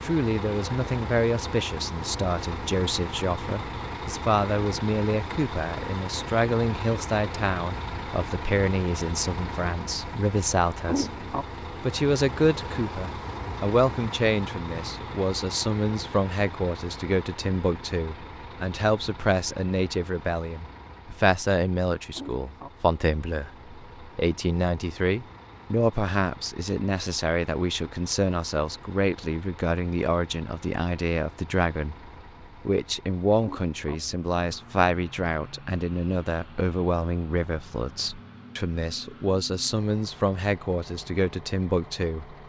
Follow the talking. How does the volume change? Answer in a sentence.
The volume of the talking stays about the same.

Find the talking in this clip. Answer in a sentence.
The talking can be heard from 0.0 to 42.4 s.